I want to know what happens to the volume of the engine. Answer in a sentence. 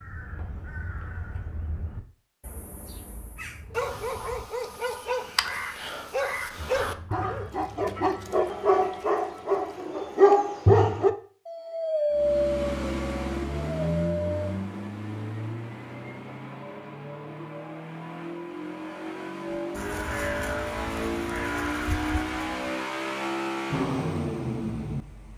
The volume of the engine goes down, then up.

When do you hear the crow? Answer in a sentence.
You can hear the crow from 0.0 to 4.5 s, from 5.2 to 7.5 s and from 19.8 to 22.5 s.